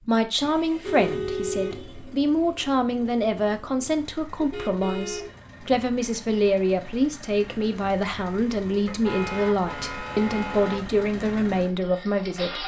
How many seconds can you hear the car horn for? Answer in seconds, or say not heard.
5 s.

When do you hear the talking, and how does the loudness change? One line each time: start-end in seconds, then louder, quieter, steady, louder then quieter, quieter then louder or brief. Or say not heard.
0.1-12.6 steady.